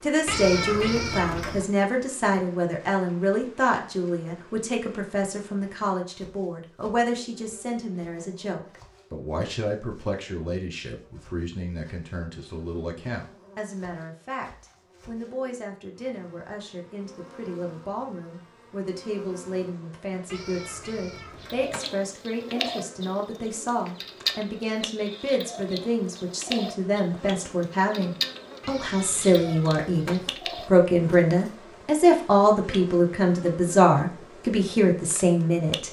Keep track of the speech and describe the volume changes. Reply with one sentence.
The loudness of the speech goes down, then up.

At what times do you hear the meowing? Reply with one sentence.
The meowing can be heard from 0.2 to 1.6 s, from 20.2 to 21.9 s and from 28.6 to 30.4 s.